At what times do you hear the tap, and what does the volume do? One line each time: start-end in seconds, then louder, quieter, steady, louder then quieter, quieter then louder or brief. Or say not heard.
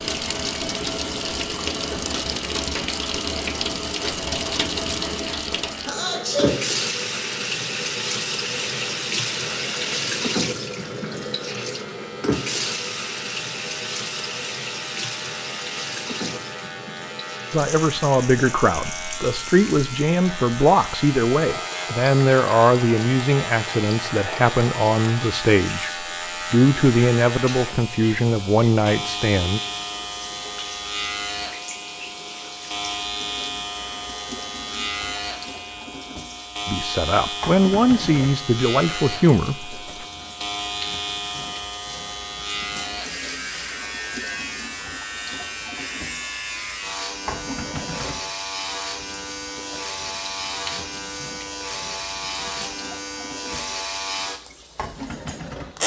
0.0-55.8 quieter.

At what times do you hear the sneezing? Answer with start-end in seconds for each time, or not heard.
5.8-6.6.